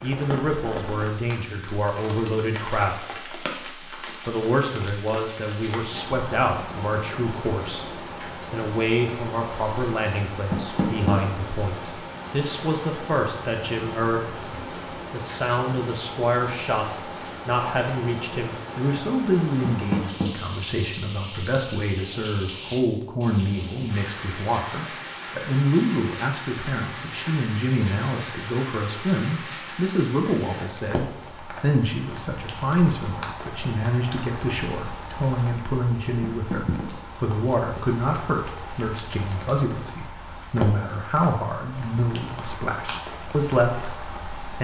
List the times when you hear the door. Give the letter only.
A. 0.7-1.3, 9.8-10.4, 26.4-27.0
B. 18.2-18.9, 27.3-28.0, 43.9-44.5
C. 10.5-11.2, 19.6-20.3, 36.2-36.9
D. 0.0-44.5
C.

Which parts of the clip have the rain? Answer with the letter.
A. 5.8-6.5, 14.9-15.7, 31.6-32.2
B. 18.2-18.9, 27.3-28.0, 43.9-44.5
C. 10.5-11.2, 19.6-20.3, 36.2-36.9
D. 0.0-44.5
D.